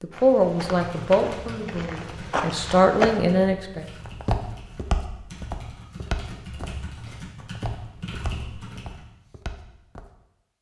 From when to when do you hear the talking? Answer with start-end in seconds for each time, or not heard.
0.0-3.9.